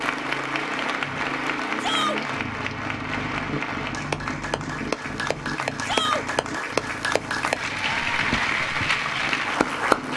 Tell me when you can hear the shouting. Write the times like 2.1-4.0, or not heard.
1.8-2.2, 5.8-6.2.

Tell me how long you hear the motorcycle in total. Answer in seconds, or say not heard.
10 s.